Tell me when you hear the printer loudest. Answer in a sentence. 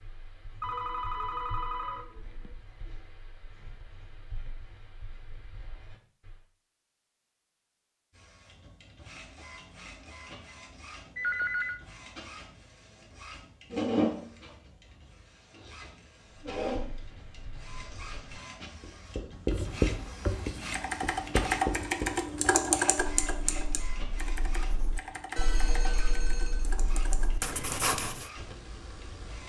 The volume of the printer peaks at 14 seconds.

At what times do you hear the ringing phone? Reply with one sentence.
The ringing phone can be heard from 0.6 to 2.5 s, from 11.2 to 11.8 s and from 25.4 to 26.7 s.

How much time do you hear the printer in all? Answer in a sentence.
The printer can be heard for 21 seconds in total.